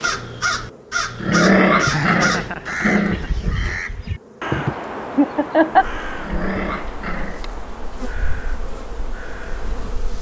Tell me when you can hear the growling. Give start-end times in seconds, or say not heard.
1.2-3.5, 6.2-7.6.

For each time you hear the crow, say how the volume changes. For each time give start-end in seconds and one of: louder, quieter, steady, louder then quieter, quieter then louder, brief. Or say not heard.
0.0-9.9 quieter.